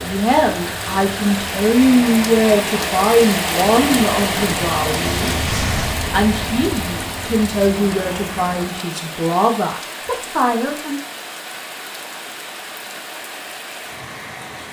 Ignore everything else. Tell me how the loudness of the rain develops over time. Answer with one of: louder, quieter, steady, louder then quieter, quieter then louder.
quieter.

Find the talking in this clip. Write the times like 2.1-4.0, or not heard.
0.0-11.0.